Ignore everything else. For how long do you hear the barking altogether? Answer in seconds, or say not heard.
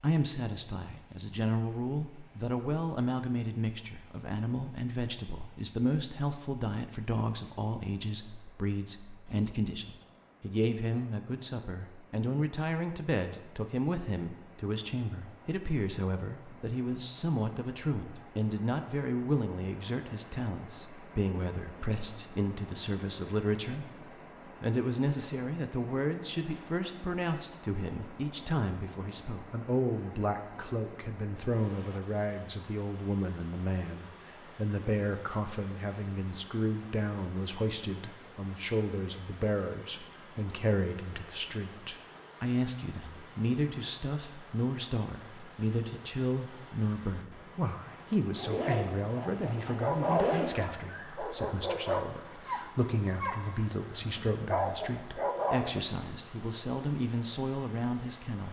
7 s.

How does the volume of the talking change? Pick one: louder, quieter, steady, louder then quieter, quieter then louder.
steady.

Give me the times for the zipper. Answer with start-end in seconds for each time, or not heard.
48.4-50.5.